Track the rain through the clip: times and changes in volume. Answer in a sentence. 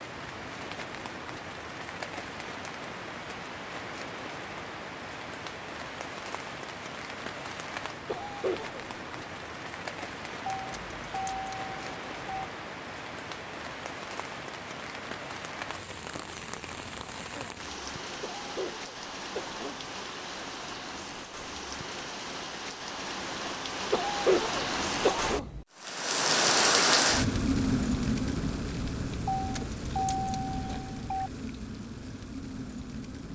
You can hear the rain from 0.0 to 33.3 s, getting louder.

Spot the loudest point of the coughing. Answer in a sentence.
The volume of the coughing peaks at 24 seconds.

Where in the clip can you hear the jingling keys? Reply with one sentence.
You can hear the jingling keys from 10.4 to 12.4 s and from 29.4 to 31.3 s.